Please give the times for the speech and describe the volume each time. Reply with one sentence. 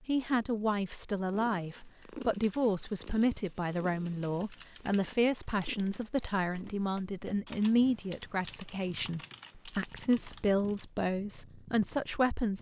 You can hear the speech from 0.1 to 12.5 s, at a steady volume.